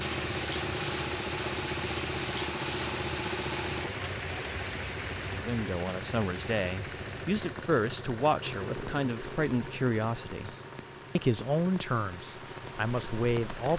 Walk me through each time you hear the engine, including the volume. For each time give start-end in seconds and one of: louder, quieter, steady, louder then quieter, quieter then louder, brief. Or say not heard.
0.0-13.7 quieter.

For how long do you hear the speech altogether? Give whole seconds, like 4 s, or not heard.
8 s.